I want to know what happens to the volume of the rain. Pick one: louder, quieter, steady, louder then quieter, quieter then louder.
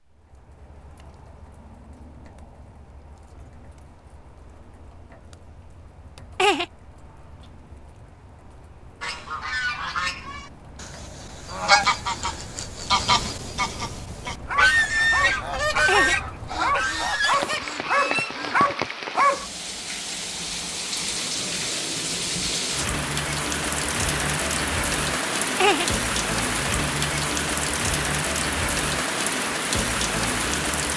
louder.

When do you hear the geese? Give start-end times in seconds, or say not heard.
9.0-18.8.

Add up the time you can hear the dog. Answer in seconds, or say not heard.
5 s.